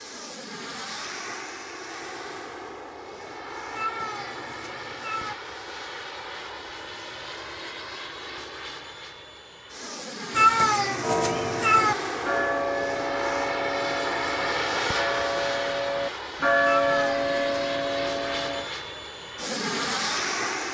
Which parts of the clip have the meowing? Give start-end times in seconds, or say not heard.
3.8-5.3, 10.3-11.9, 16.6-17.7.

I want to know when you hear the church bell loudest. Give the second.
17 s.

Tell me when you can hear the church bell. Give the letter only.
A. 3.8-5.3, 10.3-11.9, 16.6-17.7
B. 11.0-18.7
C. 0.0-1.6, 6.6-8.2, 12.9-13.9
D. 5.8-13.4
B.